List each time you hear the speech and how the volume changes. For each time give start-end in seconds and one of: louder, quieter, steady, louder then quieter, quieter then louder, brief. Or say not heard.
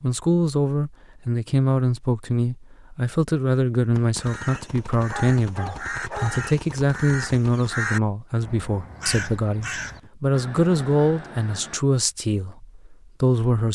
0.0-13.7 steady.